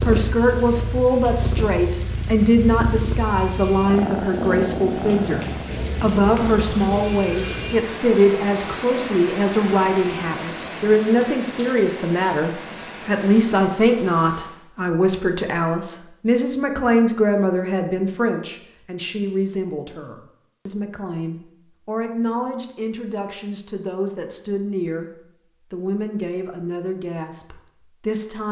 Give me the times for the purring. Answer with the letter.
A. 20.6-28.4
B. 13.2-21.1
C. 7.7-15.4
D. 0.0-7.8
D.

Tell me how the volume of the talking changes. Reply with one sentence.
The volume of the talking goes down.